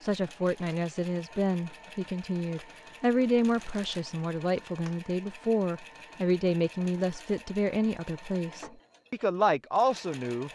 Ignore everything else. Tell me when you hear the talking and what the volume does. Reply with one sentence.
The talking can be heard from 0.0 to 10.5 s, at a steady volume.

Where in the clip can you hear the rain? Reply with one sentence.
The rain can't be heard in this clip.